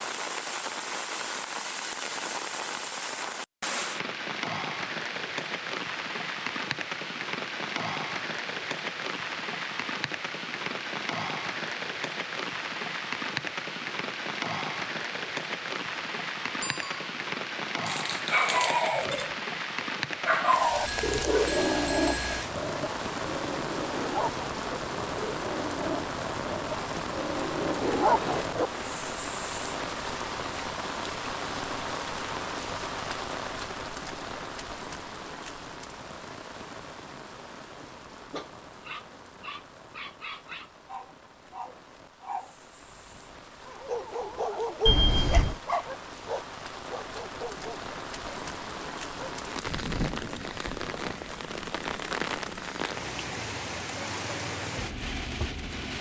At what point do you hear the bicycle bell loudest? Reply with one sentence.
The volume of the bicycle bell peaks at 45 seconds.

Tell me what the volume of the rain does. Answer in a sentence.
The volume of the rain goes down, then up.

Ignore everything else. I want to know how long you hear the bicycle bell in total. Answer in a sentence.
You can hear the bicycle bell for 3 seconds altogether.